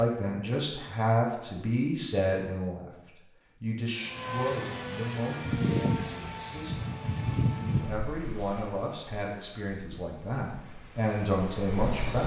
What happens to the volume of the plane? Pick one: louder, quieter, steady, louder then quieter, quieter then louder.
quieter then louder.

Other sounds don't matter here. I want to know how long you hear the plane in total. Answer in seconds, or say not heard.
8 s.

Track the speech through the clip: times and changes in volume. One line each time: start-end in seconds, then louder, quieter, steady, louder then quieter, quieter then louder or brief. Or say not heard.
0.0-3.0 brief
3.6-12.2 quieter then louder.